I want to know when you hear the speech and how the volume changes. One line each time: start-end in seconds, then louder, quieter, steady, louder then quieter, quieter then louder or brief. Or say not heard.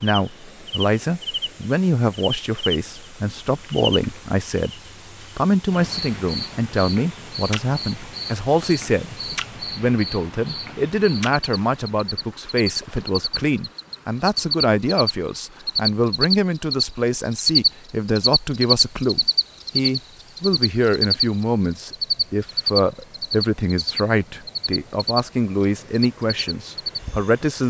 0.0-27.6 steady.